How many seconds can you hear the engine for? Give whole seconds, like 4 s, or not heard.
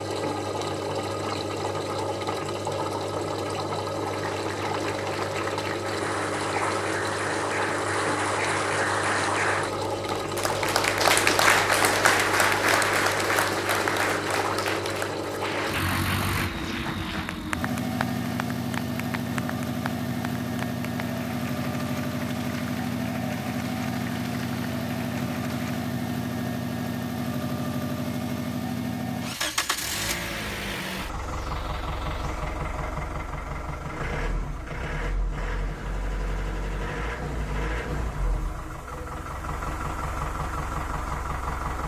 42 s.